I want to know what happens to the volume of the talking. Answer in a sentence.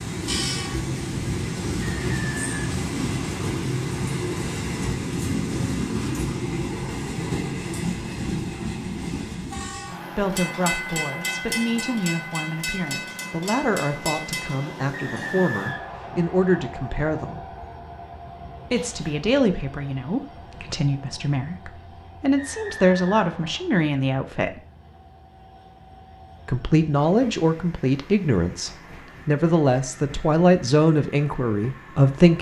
The volume of the talking goes up.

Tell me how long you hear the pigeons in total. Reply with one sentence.
The pigeons can't be heard in this clip.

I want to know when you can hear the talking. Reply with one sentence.
You can hear the talking from 10.1 to 17.4 s, from 18.7 to 24.6 s and from 26.4 to 32.3 s.